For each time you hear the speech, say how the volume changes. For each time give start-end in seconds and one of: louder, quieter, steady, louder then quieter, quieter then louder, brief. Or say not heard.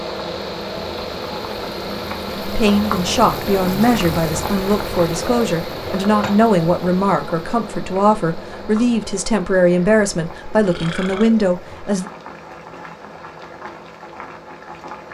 2.5-12.1 steady.